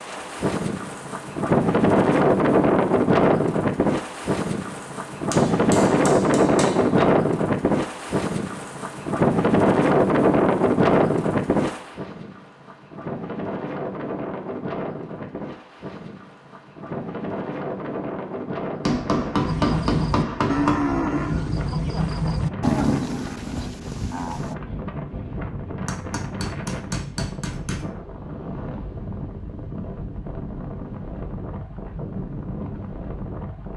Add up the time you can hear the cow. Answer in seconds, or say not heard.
5 s.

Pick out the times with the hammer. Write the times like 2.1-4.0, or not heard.
5.2-7.1, 18.9-20.8, 25.9-27.9.